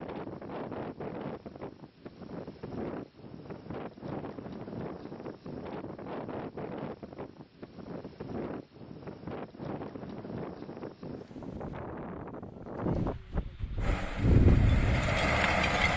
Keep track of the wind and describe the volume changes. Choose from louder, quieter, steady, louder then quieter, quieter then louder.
louder.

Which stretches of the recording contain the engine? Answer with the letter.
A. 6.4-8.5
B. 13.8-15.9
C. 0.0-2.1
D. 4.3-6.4
B.